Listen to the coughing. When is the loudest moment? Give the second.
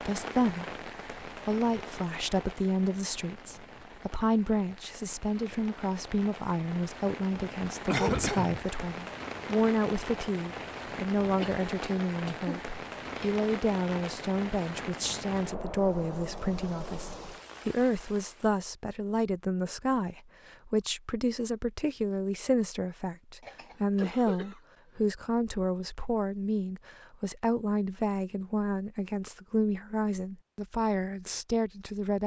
8 s.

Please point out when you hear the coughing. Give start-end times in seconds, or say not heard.
7.8-8.7, 11.4-13.3, 23.4-25.1.